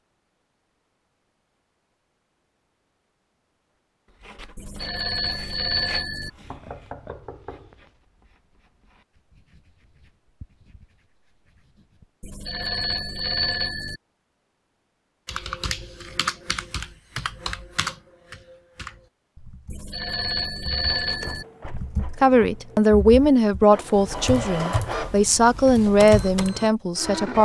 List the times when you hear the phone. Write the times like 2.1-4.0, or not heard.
4.5-6.3, 12.2-14.0, 19.7-21.4.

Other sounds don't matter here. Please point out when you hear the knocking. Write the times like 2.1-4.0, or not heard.
6.5-7.9.